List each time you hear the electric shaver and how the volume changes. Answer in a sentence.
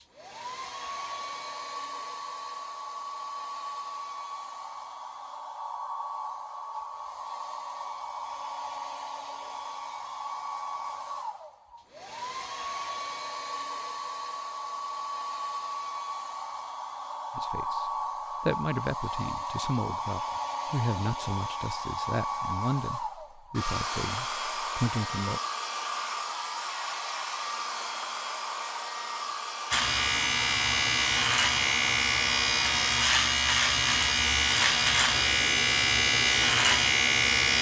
The electric shaver can be heard from 29.7 to 37.5 s, at a steady volume.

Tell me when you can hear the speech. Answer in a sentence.
You can hear the speech from 17.4 to 25.4 s.